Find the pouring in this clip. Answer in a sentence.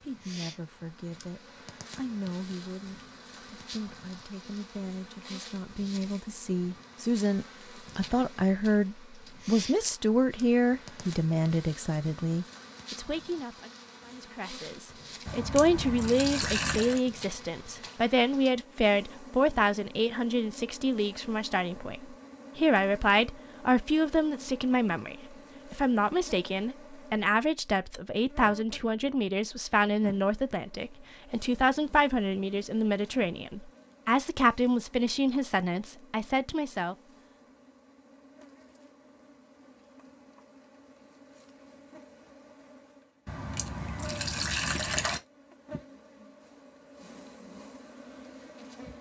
You can hear the pouring from 15.2 to 17.0 s and from 43.2 to 45.2 s.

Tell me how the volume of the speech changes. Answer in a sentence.
The volume of the speech goes up.